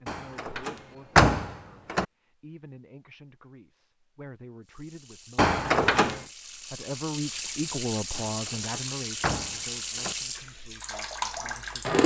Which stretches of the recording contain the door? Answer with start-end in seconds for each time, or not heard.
0.1-2.0, 5.3-6.2, 8.2-10.2.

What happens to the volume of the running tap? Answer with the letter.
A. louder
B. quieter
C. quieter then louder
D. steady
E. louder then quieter
A.